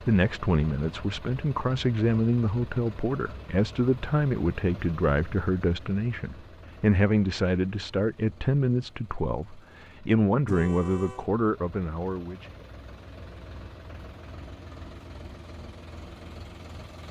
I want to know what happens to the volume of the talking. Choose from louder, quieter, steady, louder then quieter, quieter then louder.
steady.